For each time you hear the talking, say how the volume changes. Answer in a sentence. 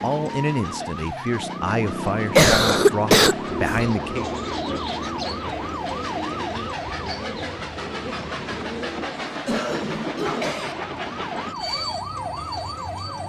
You can hear the talking from 0.0 to 4.3 s, at a steady volume.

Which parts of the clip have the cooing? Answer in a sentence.
You can hear the cooing from 3.5 to 9.2 s.